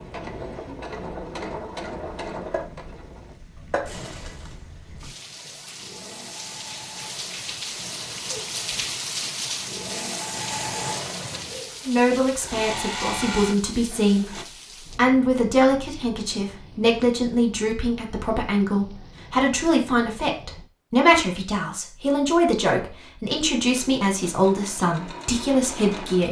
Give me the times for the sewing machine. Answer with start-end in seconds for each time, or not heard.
0.0-14.4, 23.5-26.2.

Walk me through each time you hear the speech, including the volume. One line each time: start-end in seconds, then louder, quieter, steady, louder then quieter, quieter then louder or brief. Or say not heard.
11.8-26.2 steady.